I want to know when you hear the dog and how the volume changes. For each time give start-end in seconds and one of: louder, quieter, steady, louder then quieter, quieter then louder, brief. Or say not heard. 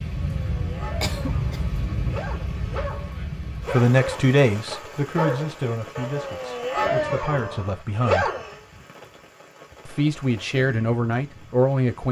0.3-8.6 louder.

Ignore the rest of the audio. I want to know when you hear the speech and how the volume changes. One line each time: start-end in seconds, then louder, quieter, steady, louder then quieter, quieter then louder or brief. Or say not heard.
3.5-8.3 quieter then louder
9.8-12.0 brief.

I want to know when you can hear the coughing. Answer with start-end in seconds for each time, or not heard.
1.0-1.6.